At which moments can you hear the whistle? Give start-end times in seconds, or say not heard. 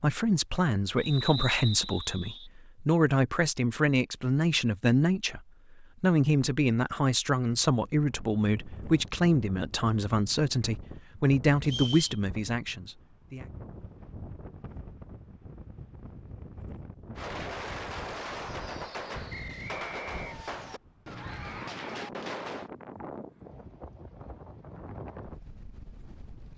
0.9-2.5, 11.6-12.2, 19.3-20.2.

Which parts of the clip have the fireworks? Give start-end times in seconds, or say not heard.
17.1-22.7.